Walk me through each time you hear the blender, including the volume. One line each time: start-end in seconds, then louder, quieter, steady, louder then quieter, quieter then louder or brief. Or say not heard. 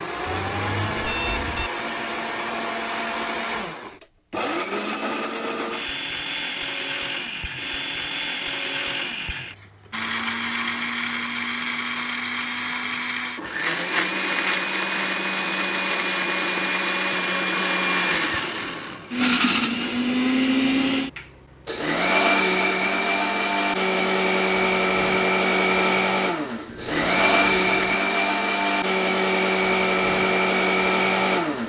0.0-31.6 louder.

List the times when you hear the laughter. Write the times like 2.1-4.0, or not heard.
not heard.